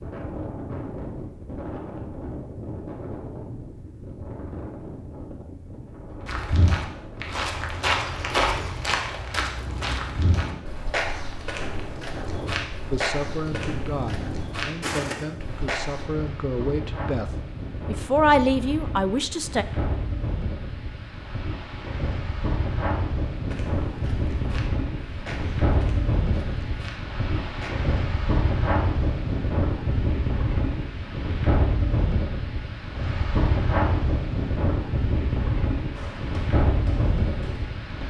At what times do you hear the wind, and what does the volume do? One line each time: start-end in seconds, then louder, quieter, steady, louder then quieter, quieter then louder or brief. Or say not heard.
0.0-38.0 louder.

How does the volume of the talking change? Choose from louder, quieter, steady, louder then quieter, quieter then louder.
louder.